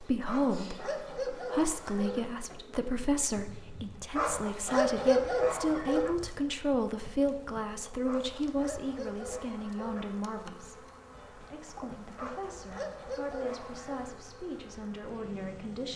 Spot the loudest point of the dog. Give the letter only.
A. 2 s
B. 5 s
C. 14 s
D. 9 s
B.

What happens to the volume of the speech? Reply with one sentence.
The volume of the speech goes down.